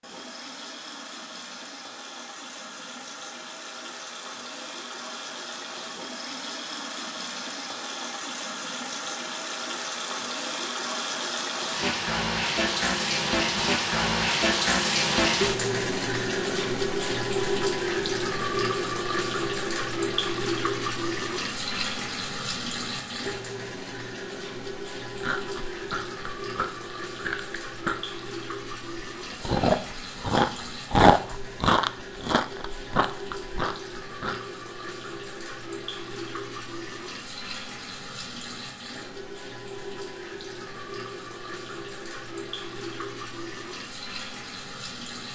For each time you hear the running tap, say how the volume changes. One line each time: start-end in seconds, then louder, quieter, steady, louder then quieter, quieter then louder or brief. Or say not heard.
0.0-45.3 louder then quieter.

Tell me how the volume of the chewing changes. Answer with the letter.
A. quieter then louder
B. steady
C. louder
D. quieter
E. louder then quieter
E.